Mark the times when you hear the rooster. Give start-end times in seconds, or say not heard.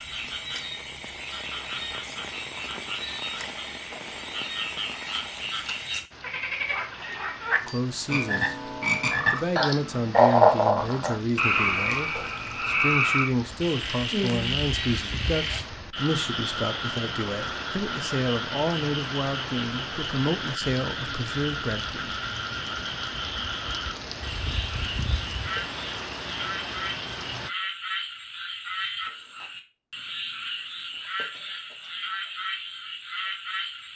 not heard.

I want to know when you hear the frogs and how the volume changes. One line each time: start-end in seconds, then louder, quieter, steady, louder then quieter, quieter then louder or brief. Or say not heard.
0.0-33.9 louder then quieter.